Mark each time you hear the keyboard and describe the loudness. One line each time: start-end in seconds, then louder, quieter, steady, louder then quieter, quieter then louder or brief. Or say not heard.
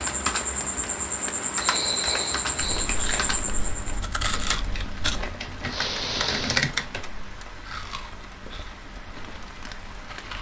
0.0-7.1 quieter then louder.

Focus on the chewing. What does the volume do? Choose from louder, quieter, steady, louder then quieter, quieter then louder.
louder then quieter.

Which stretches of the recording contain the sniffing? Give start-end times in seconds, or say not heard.
1.6-2.9, 5.7-6.7.